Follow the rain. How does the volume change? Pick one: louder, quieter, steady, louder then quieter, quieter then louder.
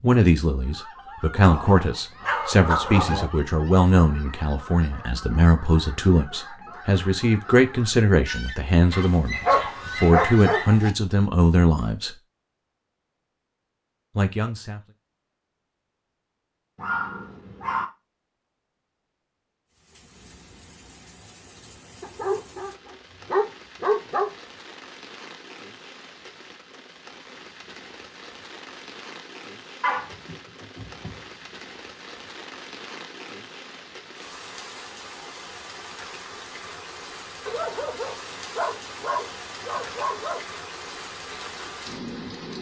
louder.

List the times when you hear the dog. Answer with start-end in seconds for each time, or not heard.
1.4-3.3, 8.9-10.9, 16.8-17.9, 22.0-24.3, 29.8-31.1, 37.5-40.4.